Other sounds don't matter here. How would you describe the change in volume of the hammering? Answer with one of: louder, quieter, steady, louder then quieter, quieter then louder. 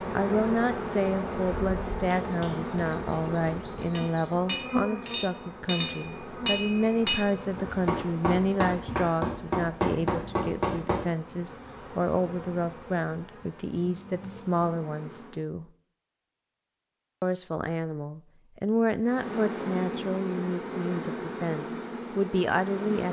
louder.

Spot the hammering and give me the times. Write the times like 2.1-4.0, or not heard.
1.9-11.0.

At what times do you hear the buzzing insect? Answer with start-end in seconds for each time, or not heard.
0.0-15.4, 19.0-23.0.